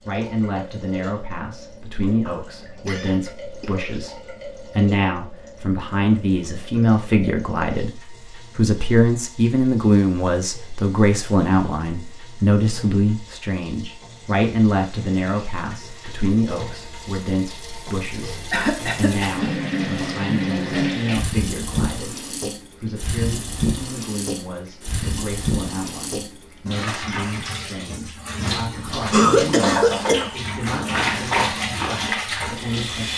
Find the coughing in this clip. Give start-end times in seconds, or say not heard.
2.2-3.7, 18.5-19.5, 29.1-30.3.